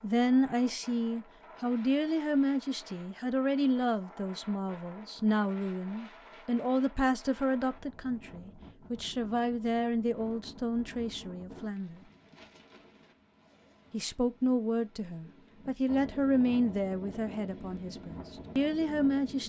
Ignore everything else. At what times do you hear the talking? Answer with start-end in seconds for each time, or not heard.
0.0-12.0, 13.9-19.4.